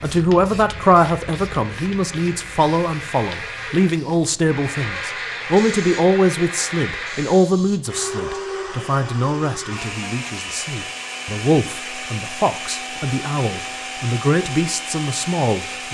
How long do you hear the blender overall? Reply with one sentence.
You can hear the blender for 16 seconds altogether.